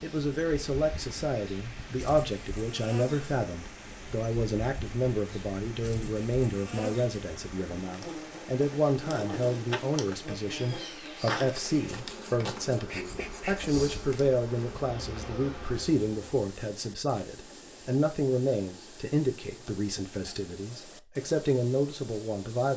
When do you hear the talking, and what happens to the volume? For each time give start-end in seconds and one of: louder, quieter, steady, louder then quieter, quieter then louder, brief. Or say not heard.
0.0-22.7 steady.